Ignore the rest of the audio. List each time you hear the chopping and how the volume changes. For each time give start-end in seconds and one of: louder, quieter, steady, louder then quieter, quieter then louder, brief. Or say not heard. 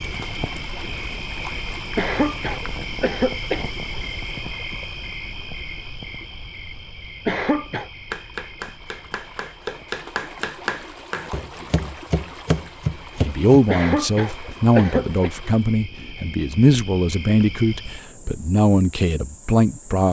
8.1-13.6 louder.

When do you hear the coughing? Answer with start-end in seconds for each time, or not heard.
1.9-3.6, 7.2-7.9, 13.7-15.3.